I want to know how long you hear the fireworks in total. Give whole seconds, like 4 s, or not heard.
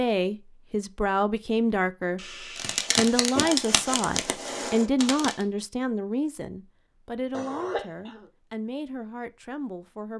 3 s.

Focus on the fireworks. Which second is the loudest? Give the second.
3 s.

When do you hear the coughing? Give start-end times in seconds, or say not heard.
2.1-3.5, 7.3-8.3.